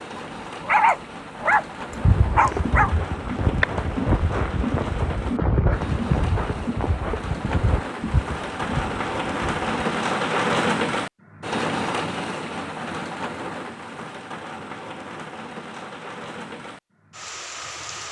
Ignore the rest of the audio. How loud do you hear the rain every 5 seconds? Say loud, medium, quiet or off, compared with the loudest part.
medium, loud, loud, medium.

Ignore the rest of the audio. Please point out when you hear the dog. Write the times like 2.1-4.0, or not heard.
0.1-2.9.